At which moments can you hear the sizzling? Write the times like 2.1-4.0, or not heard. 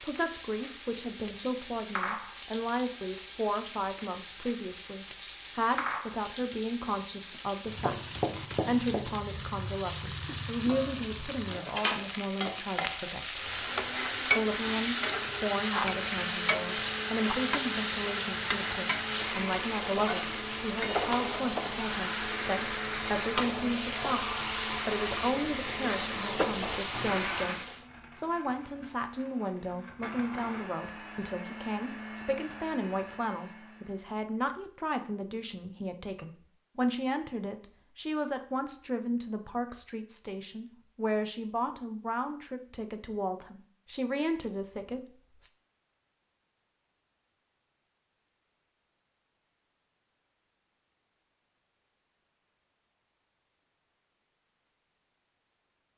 0.0-27.9.